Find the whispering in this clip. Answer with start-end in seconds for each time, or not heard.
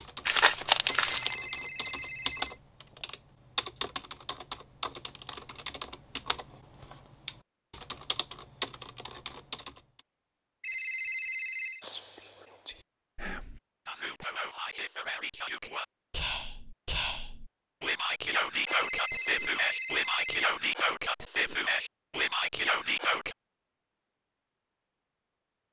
11.8-23.4.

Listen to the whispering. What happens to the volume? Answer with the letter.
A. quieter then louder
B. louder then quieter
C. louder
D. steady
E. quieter
C.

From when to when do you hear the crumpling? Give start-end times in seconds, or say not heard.
0.2-1.4.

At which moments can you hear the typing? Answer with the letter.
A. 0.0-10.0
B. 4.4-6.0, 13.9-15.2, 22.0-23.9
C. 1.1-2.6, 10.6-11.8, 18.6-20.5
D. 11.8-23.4
A.